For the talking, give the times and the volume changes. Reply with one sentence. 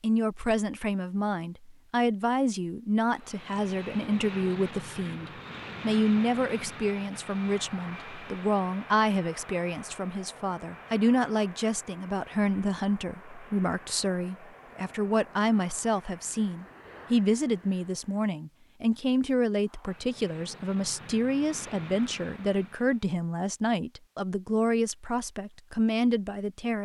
You can hear the talking from 0.0 to 26.8 s, at a steady volume.